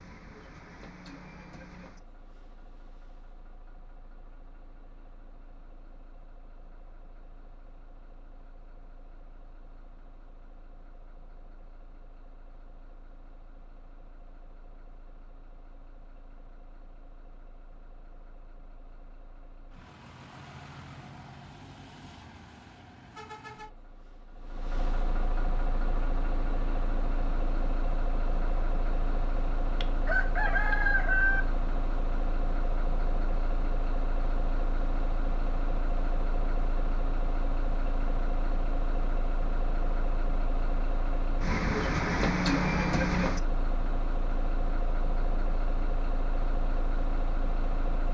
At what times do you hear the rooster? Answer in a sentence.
The rooster can be heard from 29.8 to 31.4 s.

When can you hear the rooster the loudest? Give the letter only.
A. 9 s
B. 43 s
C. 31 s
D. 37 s
C.